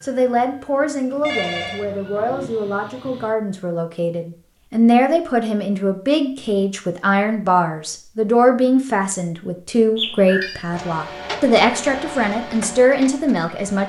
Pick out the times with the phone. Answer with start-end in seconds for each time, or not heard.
1.2-1.9, 9.9-10.6.